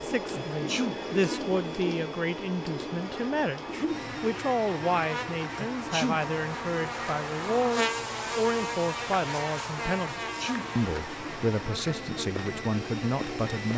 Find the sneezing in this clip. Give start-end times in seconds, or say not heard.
0.3-1.0, 5.5-6.2, 10.0-10.7.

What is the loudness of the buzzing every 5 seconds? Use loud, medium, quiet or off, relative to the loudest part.
medium, loud, medium.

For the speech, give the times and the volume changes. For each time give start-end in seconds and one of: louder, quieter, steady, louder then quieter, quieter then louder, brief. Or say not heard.
0.0-13.7 steady.